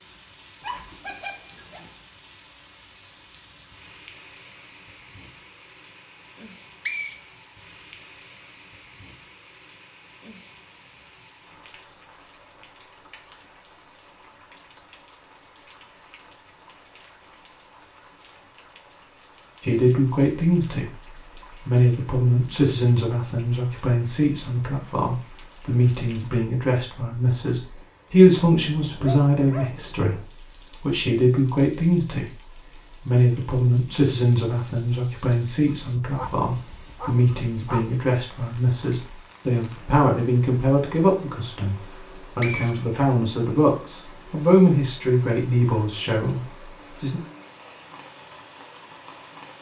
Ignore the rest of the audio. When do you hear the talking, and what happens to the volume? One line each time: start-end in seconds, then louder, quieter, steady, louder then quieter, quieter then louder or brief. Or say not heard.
19.6-47.2 steady.